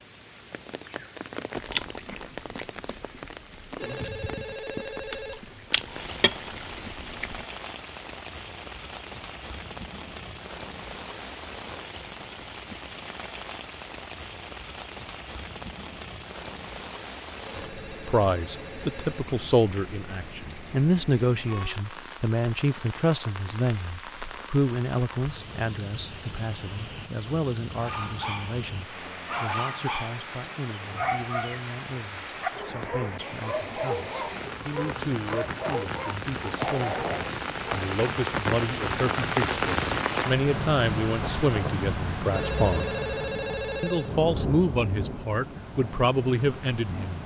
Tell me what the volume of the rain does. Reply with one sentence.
The volume of the rain goes up.